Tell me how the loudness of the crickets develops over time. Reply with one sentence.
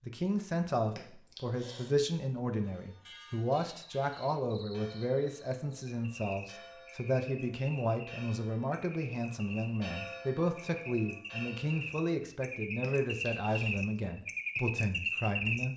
The loudness of the crickets goes up.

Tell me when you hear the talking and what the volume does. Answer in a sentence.
You can hear the talking from 0.1 to 15.7 s, at a steady volume.